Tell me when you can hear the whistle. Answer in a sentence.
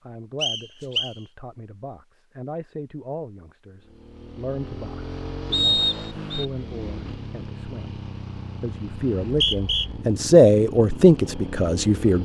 The whistle can be heard from 0.4 to 1.1 s, from 5.5 to 6.5 s and from 9.2 to 9.8 s.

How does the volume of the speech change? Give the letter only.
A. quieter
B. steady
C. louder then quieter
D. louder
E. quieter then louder
D.